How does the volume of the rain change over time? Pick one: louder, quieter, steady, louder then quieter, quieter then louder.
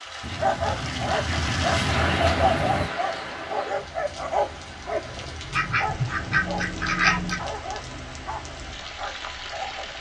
quieter.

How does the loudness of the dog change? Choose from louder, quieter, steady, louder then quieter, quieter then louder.
quieter.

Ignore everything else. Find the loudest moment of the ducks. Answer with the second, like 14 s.
7 s.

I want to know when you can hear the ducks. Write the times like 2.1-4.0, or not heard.
0.2-2.9, 5.5-7.5.